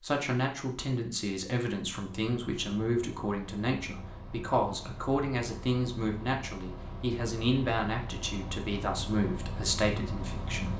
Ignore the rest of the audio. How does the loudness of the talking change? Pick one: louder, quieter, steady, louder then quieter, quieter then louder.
steady.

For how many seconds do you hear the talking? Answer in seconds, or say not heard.
11 s.